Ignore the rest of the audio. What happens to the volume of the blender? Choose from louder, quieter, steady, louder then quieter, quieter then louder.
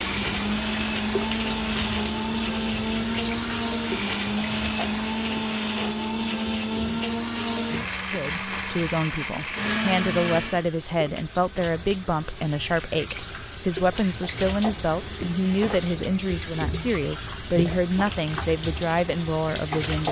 steady.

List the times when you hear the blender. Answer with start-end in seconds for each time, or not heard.
0.0-10.7.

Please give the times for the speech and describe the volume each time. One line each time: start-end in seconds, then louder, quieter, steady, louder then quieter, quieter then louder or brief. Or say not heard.
8.1-20.0 steady.